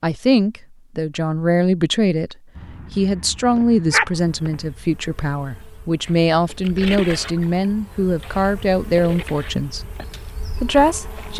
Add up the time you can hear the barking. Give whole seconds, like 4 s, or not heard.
2 s.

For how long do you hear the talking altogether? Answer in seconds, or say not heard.
11 s.